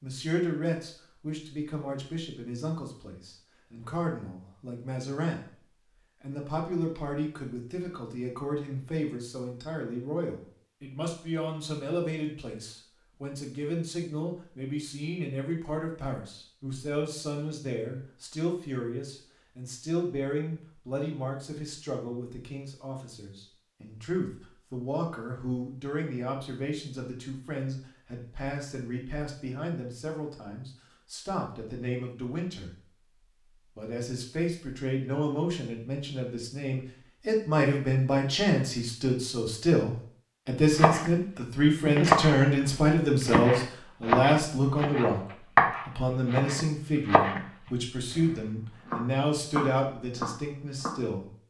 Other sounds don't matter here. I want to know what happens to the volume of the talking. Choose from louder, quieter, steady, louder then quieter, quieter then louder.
louder.